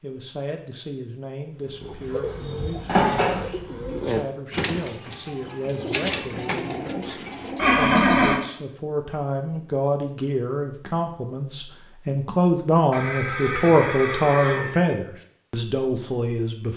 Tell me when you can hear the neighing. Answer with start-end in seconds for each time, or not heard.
2.9-3.5, 7.5-8.4, 12.9-14.9.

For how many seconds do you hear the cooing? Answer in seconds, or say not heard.
6 s.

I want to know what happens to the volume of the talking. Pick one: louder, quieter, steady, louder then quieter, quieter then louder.
louder.